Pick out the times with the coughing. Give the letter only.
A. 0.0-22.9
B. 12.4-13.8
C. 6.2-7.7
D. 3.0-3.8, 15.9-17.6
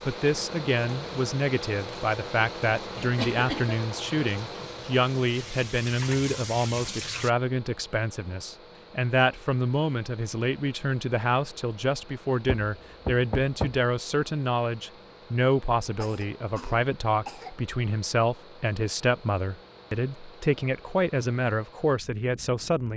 D.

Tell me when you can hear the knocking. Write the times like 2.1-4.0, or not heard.
12.4-13.8.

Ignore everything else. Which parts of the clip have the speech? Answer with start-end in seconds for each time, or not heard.
0.0-22.9.